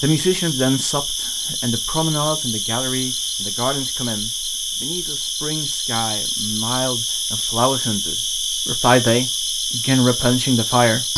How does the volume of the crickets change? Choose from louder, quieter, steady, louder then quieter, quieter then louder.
steady.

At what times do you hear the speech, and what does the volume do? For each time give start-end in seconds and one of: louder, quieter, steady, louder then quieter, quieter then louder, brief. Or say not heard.
0.0-11.1 quieter then louder.